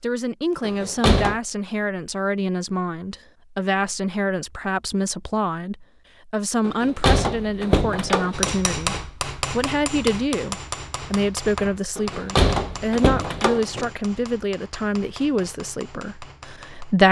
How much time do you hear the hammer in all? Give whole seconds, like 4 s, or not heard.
9 s.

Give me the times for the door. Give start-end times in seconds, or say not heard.
0.6-1.4, 6.7-8.6, 11.9-13.9.